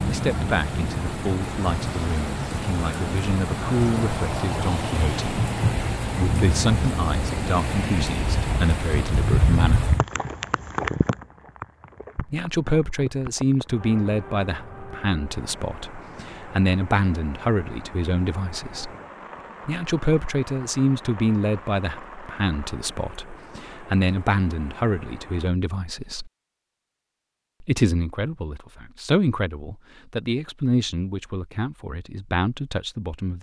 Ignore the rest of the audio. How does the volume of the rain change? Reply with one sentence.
The volume of the rain goes down.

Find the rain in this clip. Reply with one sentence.
You can hear the rain from 0.0 to 25.5 s.